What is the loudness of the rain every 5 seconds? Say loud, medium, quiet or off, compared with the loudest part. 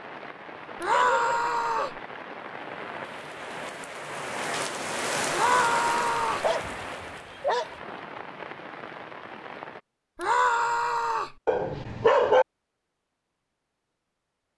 loud, loud, off.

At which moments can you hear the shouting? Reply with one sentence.
You can hear the shouting from 0.8 to 1.9 s, from 5.3 to 6.5 s and from 10.2 to 11.3 s.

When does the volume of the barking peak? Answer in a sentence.
The volume of the barking peaks at 12 seconds.